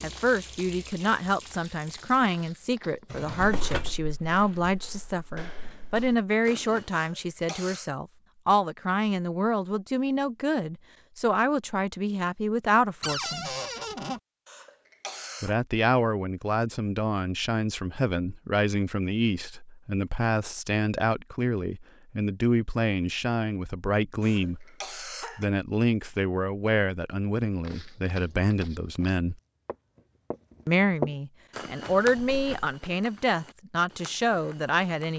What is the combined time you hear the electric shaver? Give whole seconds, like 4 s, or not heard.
not heard.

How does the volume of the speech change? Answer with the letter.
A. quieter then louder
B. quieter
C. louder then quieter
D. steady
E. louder
D.